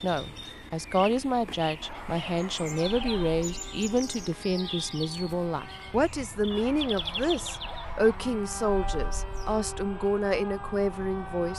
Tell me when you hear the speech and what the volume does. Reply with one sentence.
You can hear the speech from 0.0 to 11.5 s, at a steady volume.